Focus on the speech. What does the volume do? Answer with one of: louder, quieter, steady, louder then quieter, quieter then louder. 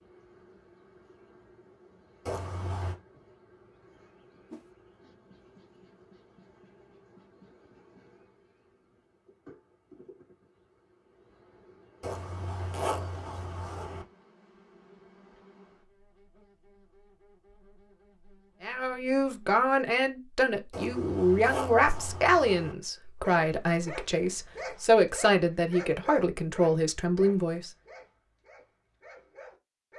steady.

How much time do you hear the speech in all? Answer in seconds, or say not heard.
9 s.